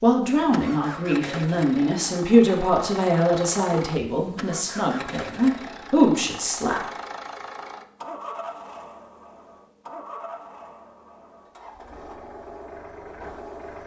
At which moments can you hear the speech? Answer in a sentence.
You can hear the speech from 0.0 to 6.8 s.